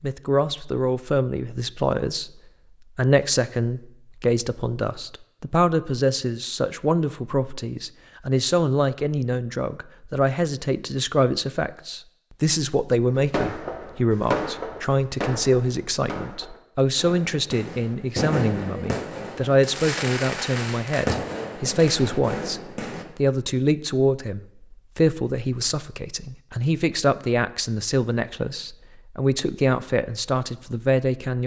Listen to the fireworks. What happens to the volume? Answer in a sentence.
The volume of the fireworks goes down, then up.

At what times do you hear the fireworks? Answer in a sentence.
The fireworks can be heard from 13.1 to 23.1 s.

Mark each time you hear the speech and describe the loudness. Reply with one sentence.
The speech can be heard from 0.0 to 31.4 s, at a steady volume.